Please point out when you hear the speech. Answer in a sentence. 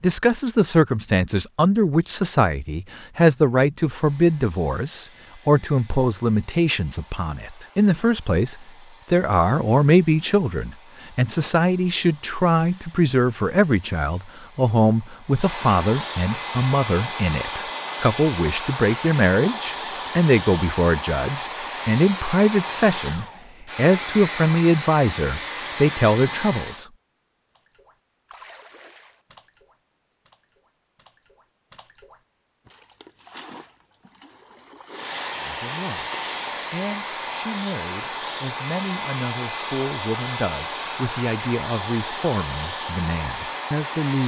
The speech can be heard from 0.0 to 26.9 s and from 35.4 to 44.2 s.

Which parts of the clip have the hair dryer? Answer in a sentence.
The hair dryer can be heard from 3.9 to 26.9 s and from 34.9 to 44.2 s.